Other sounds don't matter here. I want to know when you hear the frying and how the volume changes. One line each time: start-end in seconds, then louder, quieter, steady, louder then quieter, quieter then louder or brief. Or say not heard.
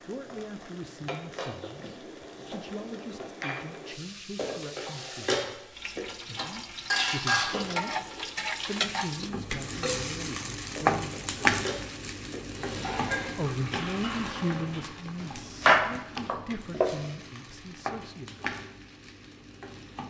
0.0-20.0 louder then quieter.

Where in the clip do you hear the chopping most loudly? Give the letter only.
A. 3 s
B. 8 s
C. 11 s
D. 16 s
D.